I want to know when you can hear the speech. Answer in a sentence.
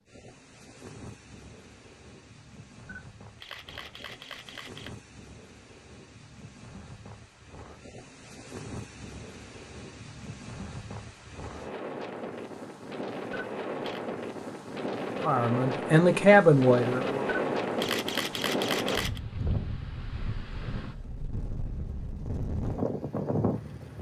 The speech can be heard from 15.2 to 17.2 s.